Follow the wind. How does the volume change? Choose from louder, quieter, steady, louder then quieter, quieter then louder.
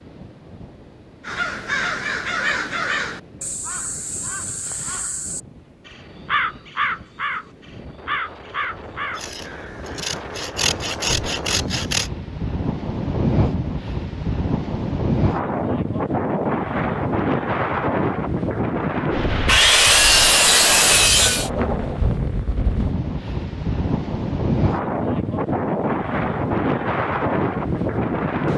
louder.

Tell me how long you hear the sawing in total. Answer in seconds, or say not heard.
5 s.